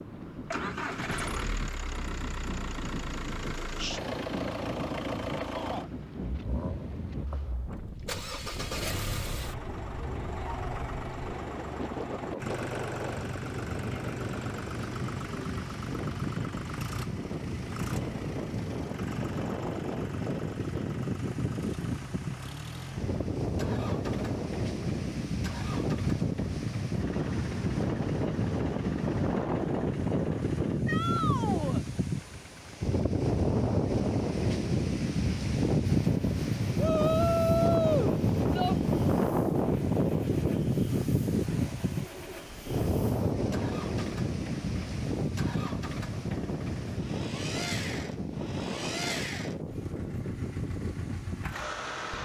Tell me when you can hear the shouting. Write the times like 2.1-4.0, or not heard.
5.5-5.9, 30.9-31.9, 36.8-38.8.